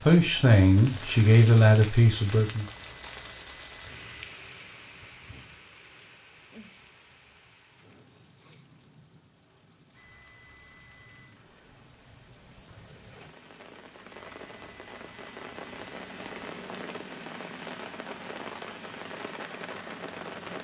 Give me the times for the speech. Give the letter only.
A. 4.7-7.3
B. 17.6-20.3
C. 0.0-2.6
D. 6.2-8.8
C.